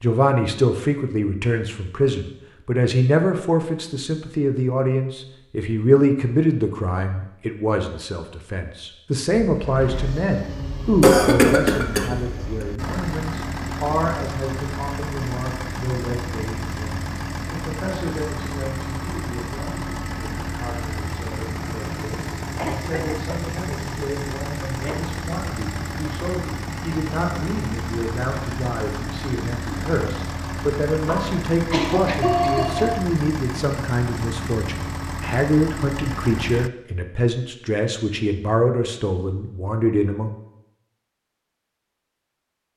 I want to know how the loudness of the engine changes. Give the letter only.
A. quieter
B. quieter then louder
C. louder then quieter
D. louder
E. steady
E.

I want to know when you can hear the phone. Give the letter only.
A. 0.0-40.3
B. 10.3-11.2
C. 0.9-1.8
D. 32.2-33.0
D.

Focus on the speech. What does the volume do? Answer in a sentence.
The volume of the speech goes down, then up.